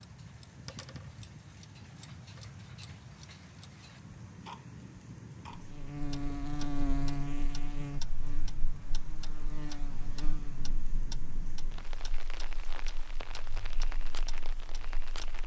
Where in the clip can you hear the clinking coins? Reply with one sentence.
The clinking coins can't be heard in this clip.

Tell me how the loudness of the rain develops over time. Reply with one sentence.
The volume of the rain stays about the same.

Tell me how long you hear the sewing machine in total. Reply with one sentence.
You can't hear the sewing machine here.